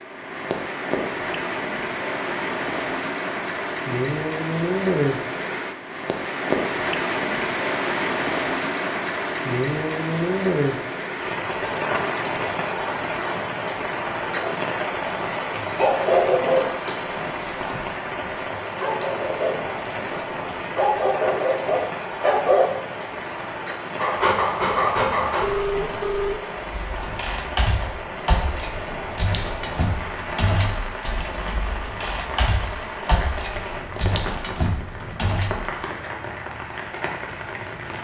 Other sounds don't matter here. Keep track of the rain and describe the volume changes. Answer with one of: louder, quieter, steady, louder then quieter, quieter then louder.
quieter.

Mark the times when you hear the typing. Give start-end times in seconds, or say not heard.
26.6-35.6.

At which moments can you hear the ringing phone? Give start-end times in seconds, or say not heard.
24.9-26.4.